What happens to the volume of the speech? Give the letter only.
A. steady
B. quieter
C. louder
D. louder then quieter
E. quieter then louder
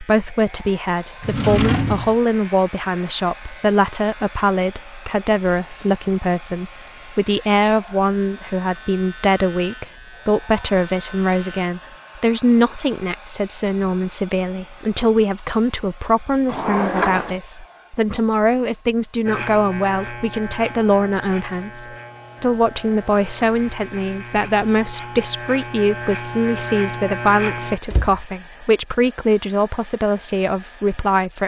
A.